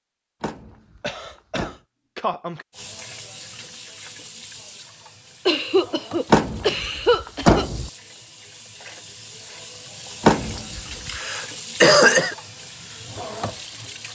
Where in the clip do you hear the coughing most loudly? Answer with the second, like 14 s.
12 s.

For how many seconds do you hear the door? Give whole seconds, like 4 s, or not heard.
4 s.